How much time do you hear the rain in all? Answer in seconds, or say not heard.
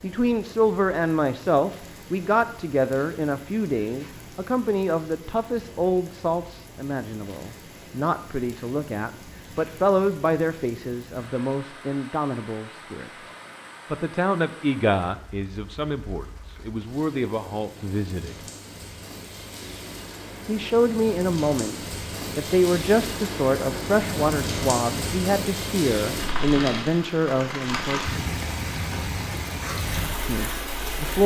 31 s.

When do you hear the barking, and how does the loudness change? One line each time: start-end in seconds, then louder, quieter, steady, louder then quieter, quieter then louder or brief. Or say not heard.
not heard.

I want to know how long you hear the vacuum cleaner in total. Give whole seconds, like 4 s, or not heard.
not heard.